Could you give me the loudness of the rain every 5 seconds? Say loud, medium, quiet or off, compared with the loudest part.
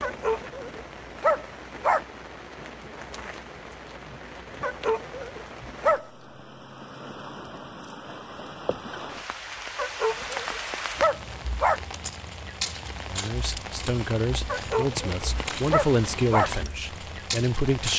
medium, medium, loud, loud.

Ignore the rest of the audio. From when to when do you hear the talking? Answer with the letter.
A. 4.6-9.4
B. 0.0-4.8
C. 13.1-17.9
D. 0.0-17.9
C.